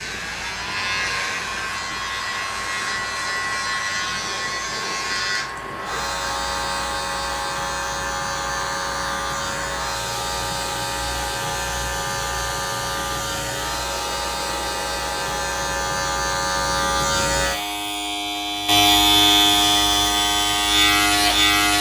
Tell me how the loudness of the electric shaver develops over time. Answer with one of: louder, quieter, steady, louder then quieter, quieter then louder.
louder.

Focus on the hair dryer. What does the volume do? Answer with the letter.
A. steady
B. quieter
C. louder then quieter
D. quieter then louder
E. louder
A.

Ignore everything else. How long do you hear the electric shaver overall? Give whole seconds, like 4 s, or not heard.
22 s.